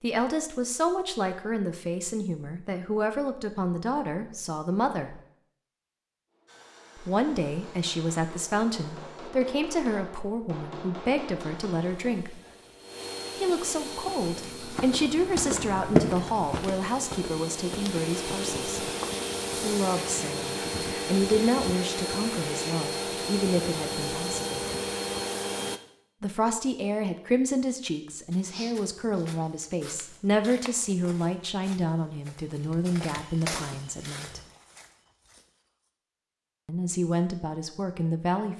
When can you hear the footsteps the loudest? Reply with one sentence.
The loudest moment of the footsteps is at 16 seconds.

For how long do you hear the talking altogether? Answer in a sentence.
You can hear the talking for 31 seconds altogether.